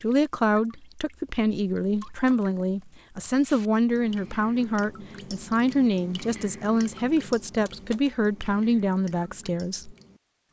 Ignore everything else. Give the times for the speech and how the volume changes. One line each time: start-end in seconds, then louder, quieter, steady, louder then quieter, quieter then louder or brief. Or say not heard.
0.0-9.9 steady.